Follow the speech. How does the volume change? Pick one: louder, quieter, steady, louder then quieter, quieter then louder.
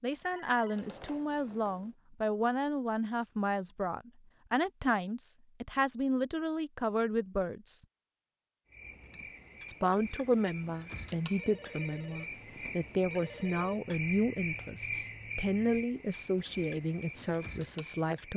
steady.